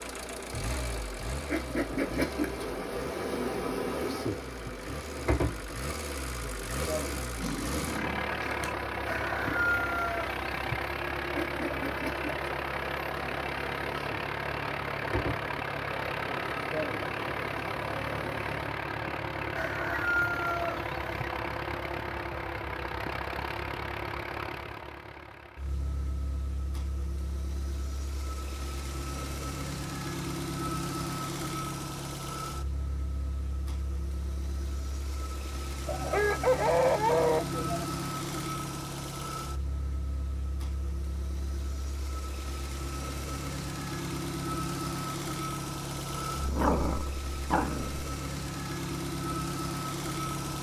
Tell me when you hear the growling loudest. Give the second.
47 s.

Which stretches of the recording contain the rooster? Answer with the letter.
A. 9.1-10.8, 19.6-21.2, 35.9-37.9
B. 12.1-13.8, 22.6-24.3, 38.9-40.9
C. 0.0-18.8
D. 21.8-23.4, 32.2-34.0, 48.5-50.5
A.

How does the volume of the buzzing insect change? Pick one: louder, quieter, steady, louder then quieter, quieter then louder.
quieter.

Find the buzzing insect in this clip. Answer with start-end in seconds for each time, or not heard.
0.0-18.8.